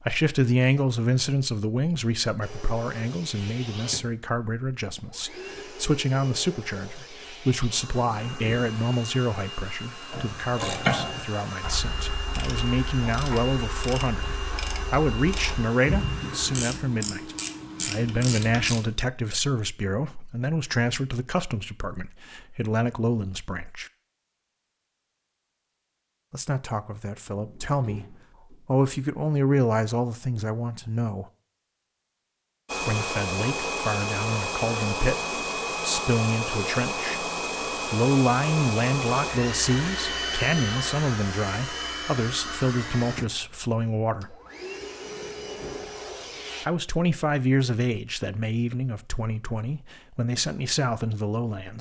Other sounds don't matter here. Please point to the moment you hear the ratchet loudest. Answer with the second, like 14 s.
11 s.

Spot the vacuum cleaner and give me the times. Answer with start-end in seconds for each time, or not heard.
2.4-16.6, 32.6-46.6.